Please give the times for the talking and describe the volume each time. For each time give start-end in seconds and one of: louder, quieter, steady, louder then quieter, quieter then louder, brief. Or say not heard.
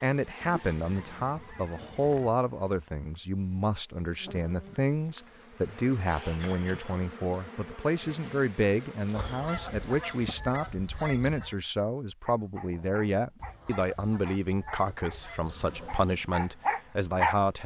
0.0-17.6 steady.